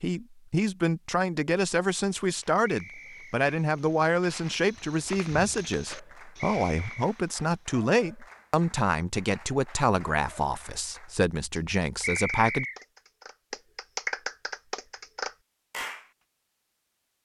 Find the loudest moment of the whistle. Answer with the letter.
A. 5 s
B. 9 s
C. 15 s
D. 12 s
D.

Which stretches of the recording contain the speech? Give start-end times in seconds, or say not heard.
0.0-12.7.